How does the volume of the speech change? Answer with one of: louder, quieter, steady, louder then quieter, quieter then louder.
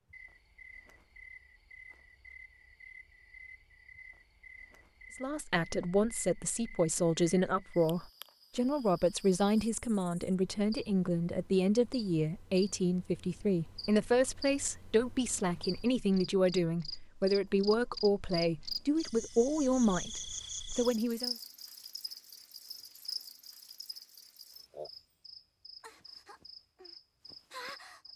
steady.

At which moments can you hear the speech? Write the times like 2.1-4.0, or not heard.
5.2-21.4.